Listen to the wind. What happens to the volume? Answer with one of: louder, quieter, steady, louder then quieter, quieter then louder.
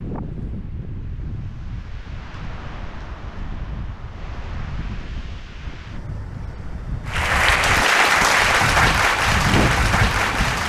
louder.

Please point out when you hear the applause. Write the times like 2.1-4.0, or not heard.
7.0-10.6.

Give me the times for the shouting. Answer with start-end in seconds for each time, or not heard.
not heard.